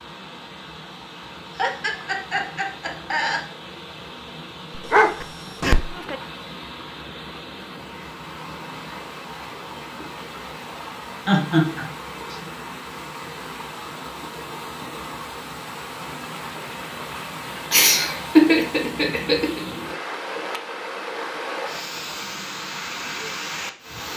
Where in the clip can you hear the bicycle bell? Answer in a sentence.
You can't hear the bicycle bell here.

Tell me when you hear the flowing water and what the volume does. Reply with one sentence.
The flowing water can be heard from 0.0 to 24.1 s, getting louder.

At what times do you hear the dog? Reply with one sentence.
You can hear the dog from 4.8 to 6.2 s.